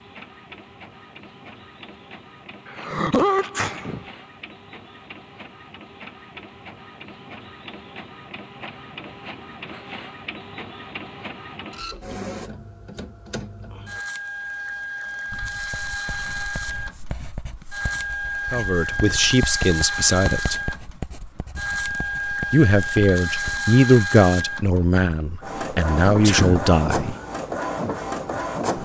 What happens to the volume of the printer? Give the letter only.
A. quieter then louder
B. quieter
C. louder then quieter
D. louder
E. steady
D.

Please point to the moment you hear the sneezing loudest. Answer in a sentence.
The volume of the sneezing peaks at 3 seconds.